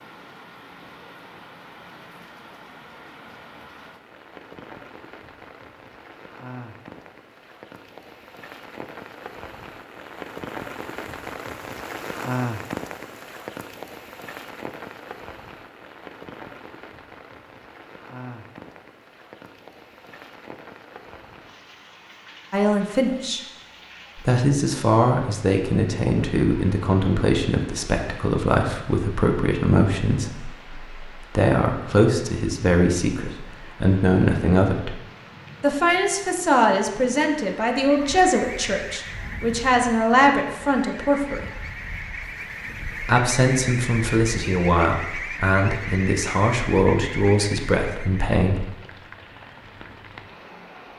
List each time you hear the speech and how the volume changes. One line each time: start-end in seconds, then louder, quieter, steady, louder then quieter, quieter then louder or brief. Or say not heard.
22.5-23.4 brief
24.1-34.9 steady
35.6-41.5 steady
43.0-48.6 steady.